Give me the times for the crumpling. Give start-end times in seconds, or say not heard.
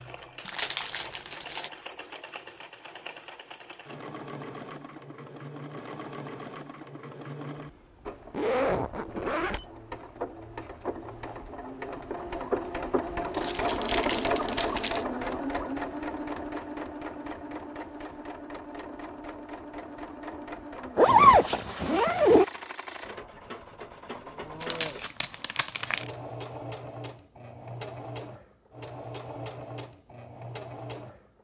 0.5-1.7, 13.3-15.1, 24.6-26.1.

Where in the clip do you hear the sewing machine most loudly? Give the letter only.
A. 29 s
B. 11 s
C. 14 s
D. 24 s
C.